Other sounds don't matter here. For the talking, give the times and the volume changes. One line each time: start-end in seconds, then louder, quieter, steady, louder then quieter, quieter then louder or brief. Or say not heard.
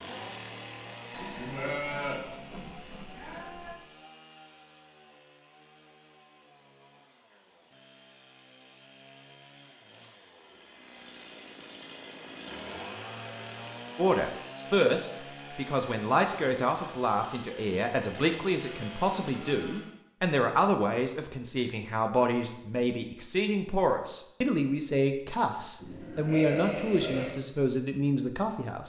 13.9-28.8 steady.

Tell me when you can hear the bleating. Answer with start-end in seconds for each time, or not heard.
1.1-3.8, 25.8-27.4.